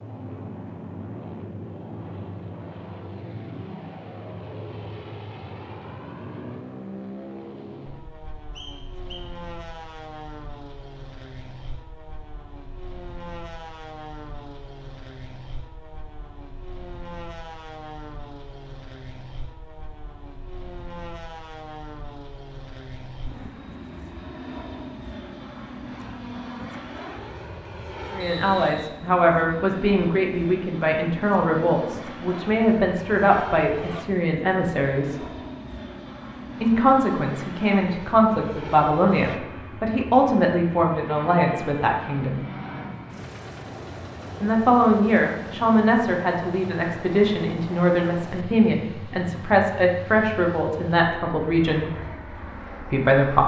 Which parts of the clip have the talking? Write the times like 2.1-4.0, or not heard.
28.1-35.2, 36.6-42.5, 44.4-51.9, 52.9-53.4.